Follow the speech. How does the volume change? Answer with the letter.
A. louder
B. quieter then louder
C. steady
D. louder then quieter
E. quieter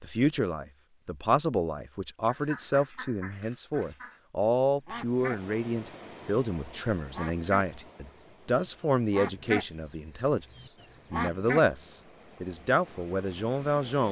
C.